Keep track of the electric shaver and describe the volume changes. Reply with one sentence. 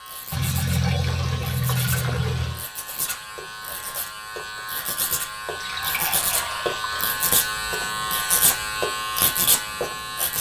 The loudness of the electric shaver goes up.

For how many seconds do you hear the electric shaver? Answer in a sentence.
The electric shaver can be heard for 10 seconds in total.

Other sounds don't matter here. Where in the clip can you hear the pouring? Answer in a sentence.
The pouring can be heard from 0.3 to 2.6 s and from 5.5 to 7.2 s.